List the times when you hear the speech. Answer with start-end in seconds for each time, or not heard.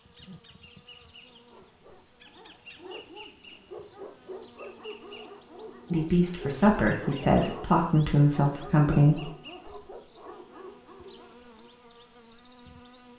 5.9-9.2.